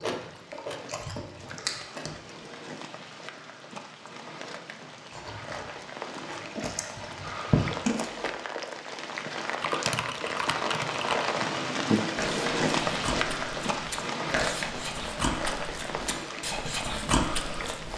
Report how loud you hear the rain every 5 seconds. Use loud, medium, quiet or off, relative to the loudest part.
quiet, medium, loud, medium.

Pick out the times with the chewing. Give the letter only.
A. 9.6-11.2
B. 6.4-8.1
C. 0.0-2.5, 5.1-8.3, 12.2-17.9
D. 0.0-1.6
C.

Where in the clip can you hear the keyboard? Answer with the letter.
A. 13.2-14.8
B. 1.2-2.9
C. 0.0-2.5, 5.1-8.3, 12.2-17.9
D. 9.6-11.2
D.